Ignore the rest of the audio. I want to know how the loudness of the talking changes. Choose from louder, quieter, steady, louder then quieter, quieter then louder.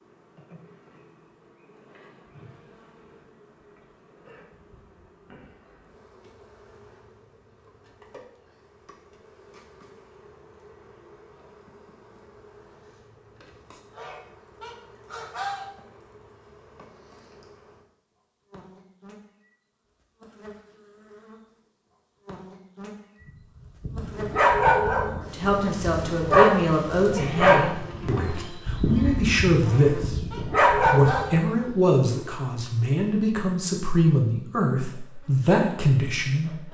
steady.